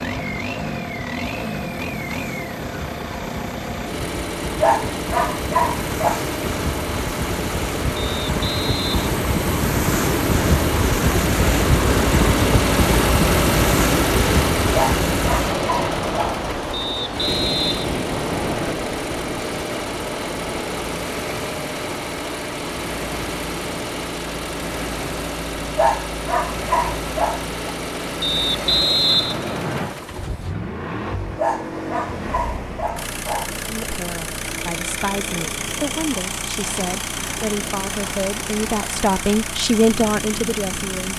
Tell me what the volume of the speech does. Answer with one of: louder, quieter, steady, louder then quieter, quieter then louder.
louder.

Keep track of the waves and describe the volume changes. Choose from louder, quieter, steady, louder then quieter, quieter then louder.
louder then quieter.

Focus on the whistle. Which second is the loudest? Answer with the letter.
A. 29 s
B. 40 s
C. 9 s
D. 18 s
A.